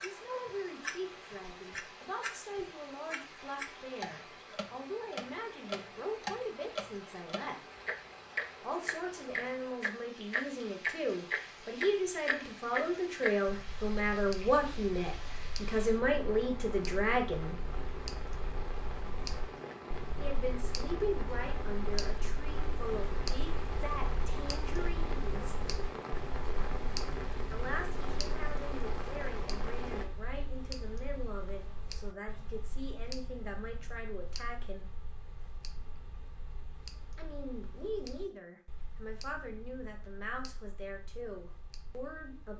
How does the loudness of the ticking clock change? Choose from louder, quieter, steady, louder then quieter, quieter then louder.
quieter.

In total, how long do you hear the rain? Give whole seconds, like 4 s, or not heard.
30 s.